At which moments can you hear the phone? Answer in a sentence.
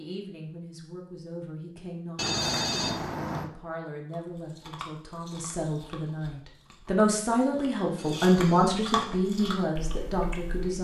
You can hear the phone from 2.1 to 3.5 s and from 8.0 to 8.8 s.